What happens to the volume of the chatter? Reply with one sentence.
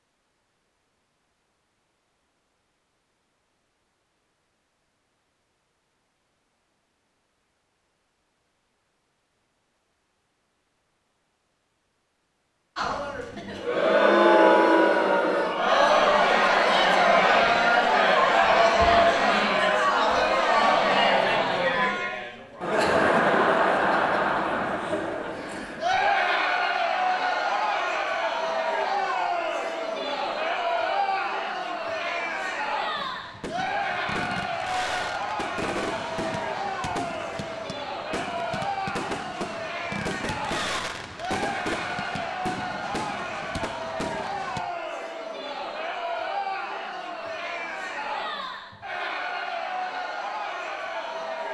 The loudness of the chatter goes down.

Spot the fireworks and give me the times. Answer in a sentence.
You can hear the fireworks from 33.0 to 44.6 s.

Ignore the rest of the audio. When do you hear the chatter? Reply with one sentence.
The chatter can be heard from 12.8 to 51.5 s.